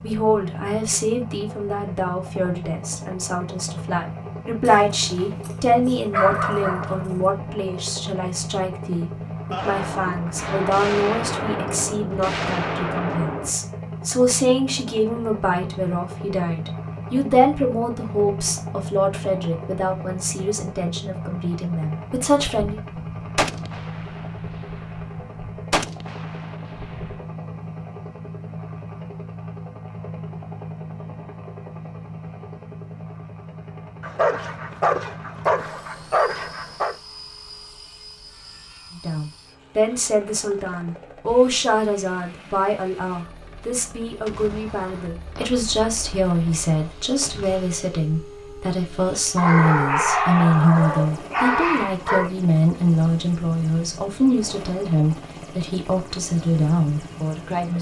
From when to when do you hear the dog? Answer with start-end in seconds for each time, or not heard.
4.7-7.2, 34.0-37.0, 49.4-52.3.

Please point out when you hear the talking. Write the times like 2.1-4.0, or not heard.
0.0-22.8, 39.0-57.7.